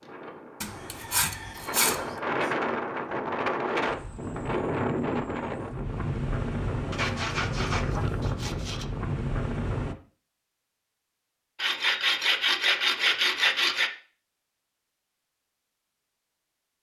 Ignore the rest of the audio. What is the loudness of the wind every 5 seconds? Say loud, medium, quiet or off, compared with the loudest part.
loud, loud, off, off.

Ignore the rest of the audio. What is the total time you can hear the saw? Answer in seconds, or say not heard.
6 s.